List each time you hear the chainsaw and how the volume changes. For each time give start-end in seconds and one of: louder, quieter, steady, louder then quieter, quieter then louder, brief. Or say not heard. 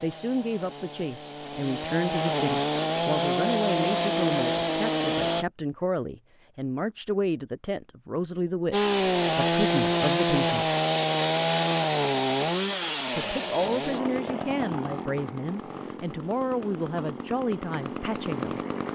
0.0-5.5 louder
8.7-18.9 quieter.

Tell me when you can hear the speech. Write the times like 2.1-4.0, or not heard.
0.0-10.8, 13.2-18.9.